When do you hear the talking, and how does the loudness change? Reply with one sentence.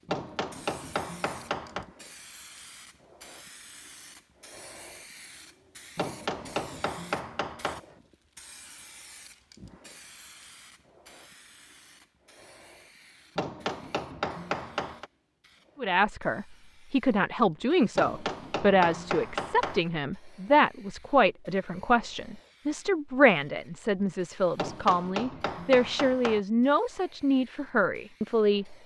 The talking can be heard from 15.8 to 28.8 s, at a steady volume.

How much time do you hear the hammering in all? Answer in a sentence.
You can hear the hammering for 9 seconds altogether.